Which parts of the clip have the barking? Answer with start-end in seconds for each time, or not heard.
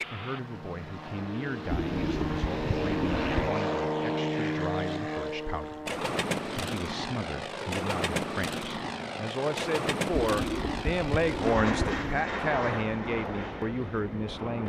not heard.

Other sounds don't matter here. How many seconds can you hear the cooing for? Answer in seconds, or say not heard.
4 s.